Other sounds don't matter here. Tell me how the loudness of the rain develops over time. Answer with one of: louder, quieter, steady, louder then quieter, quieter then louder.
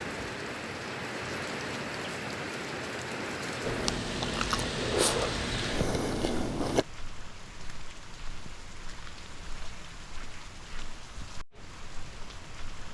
quieter.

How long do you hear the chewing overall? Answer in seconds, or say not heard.
3 s.